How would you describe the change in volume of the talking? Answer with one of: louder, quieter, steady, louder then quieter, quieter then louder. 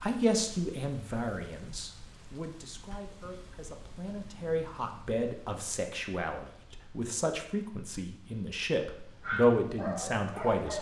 quieter then louder.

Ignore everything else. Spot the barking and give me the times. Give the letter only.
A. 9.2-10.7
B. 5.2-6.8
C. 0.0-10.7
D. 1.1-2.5
A.